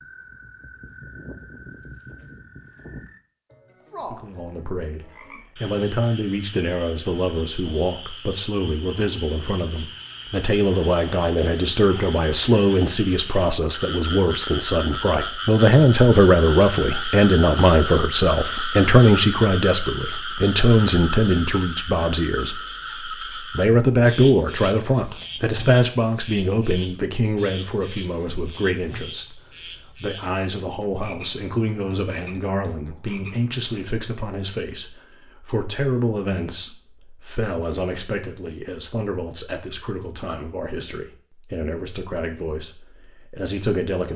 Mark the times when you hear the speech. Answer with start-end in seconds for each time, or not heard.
4.0-44.1.